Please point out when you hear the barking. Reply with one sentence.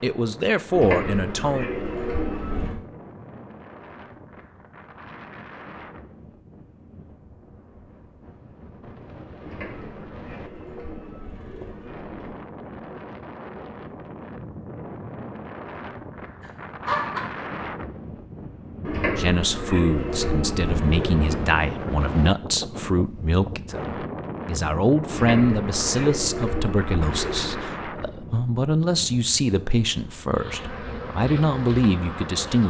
The barking can be heard from 16.4 to 17.2 s.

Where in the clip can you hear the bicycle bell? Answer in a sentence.
The bicycle bell can't be heard in this clip.